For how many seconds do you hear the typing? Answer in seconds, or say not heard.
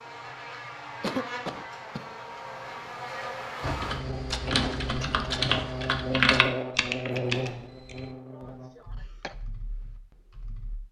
7 s.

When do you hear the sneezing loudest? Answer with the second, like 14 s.
1 s.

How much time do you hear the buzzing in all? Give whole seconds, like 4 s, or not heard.
9 s.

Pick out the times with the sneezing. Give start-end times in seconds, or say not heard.
1.0-2.1, 8.3-9.3.